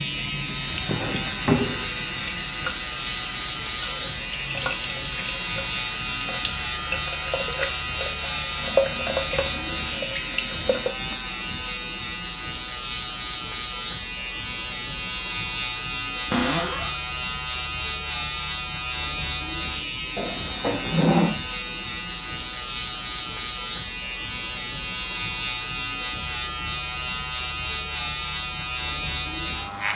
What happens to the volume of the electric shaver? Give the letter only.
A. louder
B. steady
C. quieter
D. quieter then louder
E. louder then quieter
B.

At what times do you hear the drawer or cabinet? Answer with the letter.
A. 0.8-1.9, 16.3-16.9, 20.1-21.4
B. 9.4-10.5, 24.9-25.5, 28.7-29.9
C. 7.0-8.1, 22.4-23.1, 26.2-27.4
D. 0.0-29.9
A.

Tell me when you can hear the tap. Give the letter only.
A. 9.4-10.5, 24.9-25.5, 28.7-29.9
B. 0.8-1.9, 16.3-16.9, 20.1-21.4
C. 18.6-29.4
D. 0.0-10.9
D.